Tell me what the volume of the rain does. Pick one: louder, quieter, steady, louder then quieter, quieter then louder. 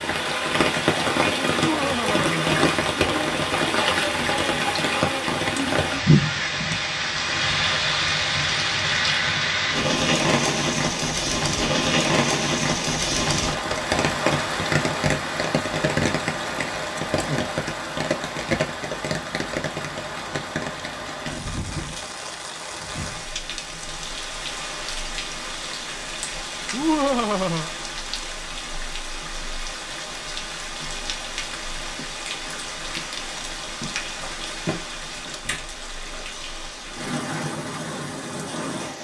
quieter.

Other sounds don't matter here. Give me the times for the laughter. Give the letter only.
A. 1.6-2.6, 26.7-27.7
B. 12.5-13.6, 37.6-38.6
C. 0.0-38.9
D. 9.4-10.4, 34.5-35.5
A.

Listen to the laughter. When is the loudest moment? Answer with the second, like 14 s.
27 s.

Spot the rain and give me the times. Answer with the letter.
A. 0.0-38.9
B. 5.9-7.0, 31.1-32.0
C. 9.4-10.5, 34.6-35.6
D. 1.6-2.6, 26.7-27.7
A.